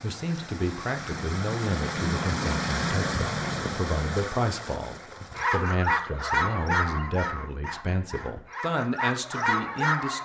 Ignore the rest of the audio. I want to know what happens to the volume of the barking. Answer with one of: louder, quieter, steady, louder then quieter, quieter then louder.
quieter then louder.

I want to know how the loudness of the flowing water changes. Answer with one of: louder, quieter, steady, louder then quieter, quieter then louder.
louder then quieter.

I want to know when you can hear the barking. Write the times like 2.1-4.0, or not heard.
5.3-10.2.